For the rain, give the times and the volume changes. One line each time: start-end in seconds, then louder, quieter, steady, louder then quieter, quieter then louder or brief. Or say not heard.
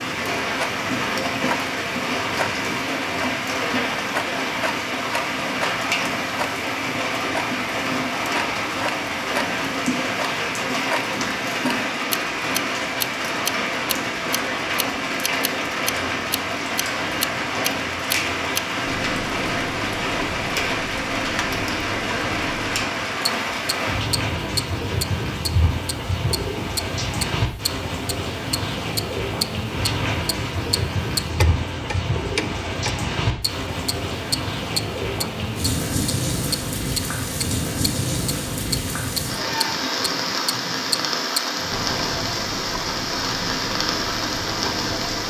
0.0-45.2 steady.